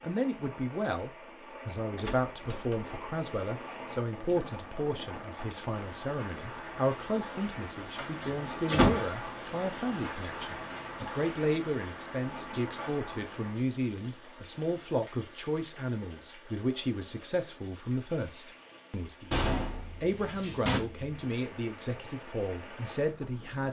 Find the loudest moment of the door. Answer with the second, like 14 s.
9 s.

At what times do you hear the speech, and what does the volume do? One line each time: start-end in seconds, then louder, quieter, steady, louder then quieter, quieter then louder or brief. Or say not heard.
0.0-23.6 steady.